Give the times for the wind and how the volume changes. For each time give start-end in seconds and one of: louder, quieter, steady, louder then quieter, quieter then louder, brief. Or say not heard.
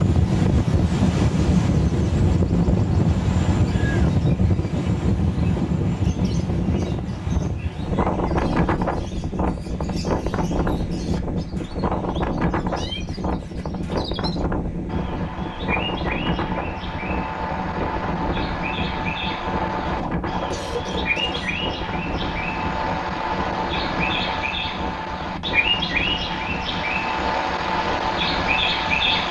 0.0-29.2 quieter.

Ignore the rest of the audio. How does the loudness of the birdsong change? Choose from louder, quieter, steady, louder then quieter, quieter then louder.
louder.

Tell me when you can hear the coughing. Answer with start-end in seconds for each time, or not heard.
19.9-21.6.